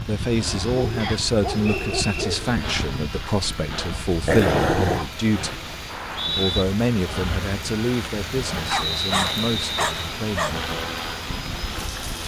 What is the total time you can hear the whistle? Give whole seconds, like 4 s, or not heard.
3 s.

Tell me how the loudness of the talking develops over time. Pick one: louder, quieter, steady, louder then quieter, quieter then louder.
quieter.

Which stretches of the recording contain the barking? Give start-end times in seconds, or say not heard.
0.7-2.6, 4.2-5.0, 8.7-10.6.